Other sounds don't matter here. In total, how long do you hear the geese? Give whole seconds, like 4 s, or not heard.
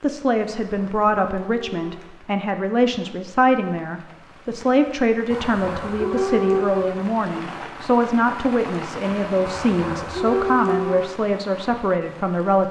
5 s.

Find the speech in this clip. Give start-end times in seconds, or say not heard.
0.0-12.6.